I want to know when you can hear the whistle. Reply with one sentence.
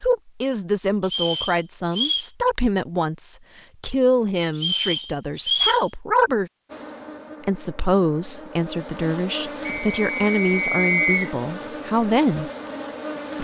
The whistle can be heard from 1.1 to 2.2 s, from 4.5 to 5.8 s and from 9.7 to 11.3 s.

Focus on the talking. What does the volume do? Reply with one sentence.
The volume of the talking stays about the same.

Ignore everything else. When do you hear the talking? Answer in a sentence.
You can hear the talking from 0.0 to 6.5 s and from 7.5 to 12.5 s.